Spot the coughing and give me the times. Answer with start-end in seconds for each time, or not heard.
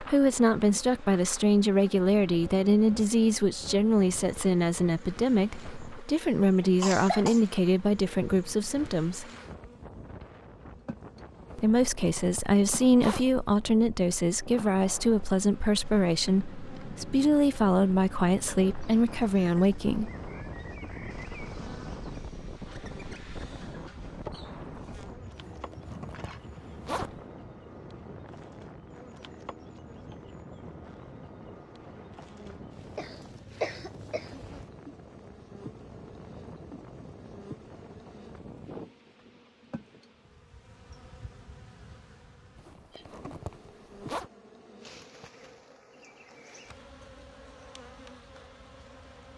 6.0-7.4, 33.0-34.5.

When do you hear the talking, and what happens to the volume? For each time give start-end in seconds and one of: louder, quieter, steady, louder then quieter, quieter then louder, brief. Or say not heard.
0.0-9.2 steady
11.6-20.1 steady.